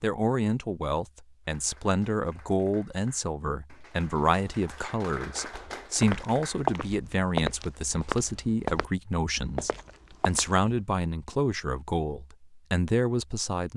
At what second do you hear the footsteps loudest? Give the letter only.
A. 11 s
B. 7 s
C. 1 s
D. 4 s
B.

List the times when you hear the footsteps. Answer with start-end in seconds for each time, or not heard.
5.4-8.9, 9.5-10.7.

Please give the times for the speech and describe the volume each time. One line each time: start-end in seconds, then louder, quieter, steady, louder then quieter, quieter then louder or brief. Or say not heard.
0.0-13.7 steady.